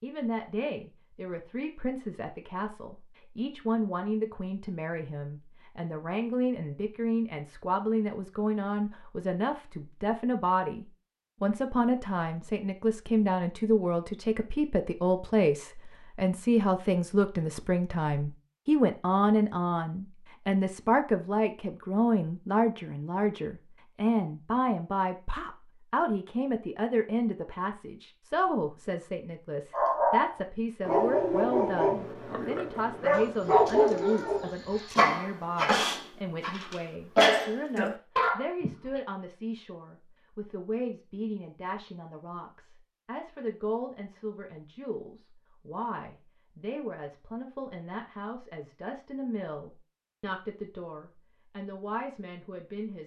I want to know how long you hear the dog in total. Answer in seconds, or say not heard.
9 s.